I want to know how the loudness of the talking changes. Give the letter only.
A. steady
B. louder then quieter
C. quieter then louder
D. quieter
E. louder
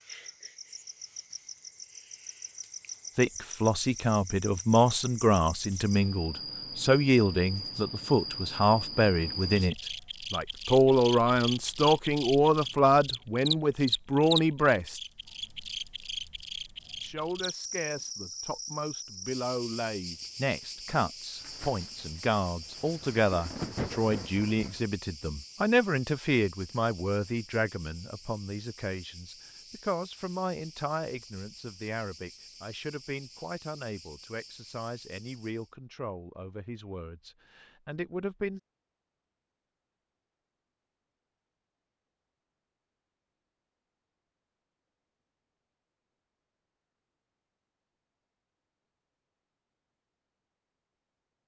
D.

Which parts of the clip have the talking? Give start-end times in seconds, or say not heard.
3.1-15.0, 17.0-38.6.